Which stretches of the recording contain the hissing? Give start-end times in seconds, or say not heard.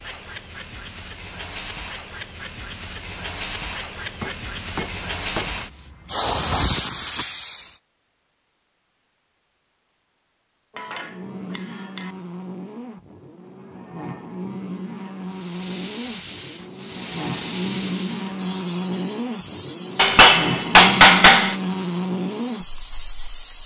0.0-7.8, 15.2-23.6.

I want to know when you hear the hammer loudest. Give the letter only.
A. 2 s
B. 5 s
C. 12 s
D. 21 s
D.